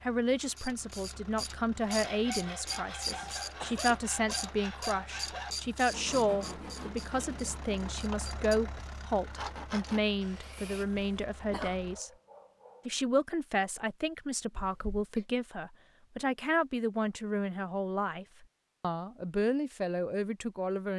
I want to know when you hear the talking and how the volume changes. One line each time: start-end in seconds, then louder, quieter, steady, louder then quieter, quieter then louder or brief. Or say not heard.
0.0-12.1 steady
12.8-20.9 steady.